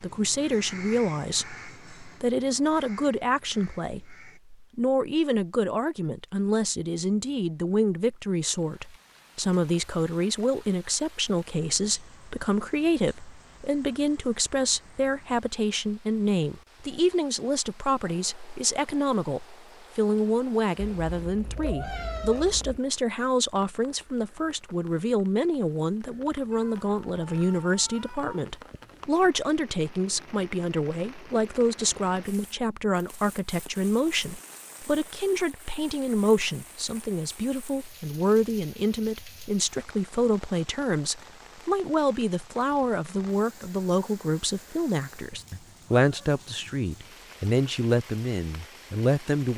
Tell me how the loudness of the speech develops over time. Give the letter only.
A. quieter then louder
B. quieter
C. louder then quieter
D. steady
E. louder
D.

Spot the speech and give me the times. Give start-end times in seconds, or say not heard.
0.0-49.5.